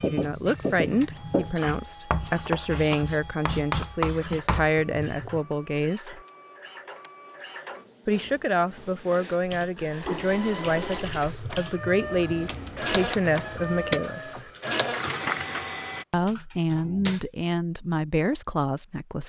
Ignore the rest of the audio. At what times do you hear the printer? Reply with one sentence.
You can hear the printer from 0.0 to 16.1 s.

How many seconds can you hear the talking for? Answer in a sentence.
The talking can be heard for 16 seconds in total.